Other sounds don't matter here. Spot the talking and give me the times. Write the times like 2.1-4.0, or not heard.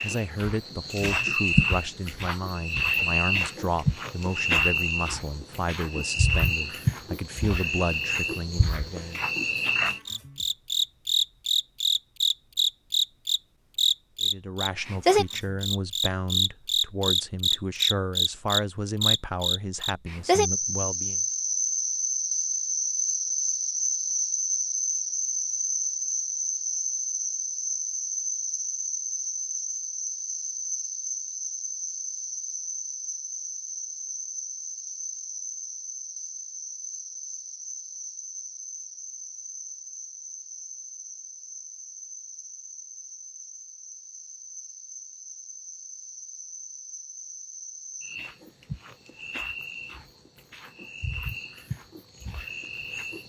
0.0-9.2, 14.2-21.2.